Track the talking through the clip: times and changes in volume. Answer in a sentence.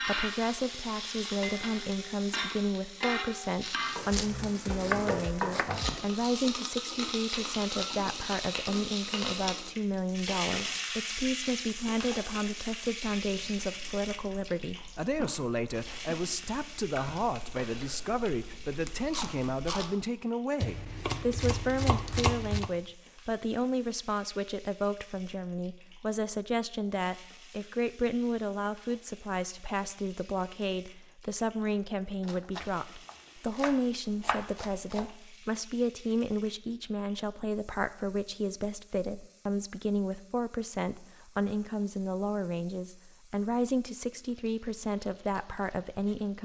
You can hear the talking from 0.0 to 46.4 s, at a steady volume.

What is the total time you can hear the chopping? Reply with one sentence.
You can hear the chopping for 7 seconds altogether.